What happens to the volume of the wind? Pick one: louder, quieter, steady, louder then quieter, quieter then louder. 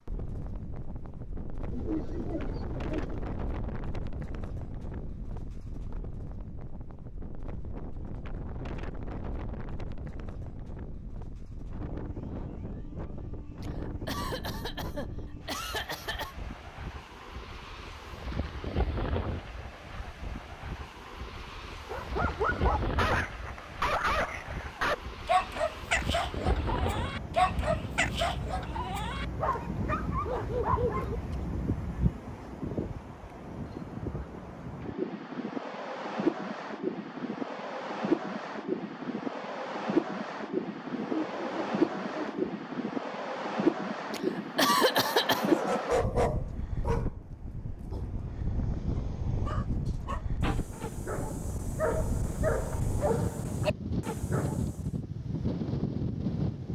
louder.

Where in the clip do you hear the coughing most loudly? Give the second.
45 s.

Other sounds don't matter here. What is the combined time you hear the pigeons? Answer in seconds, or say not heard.
3 s.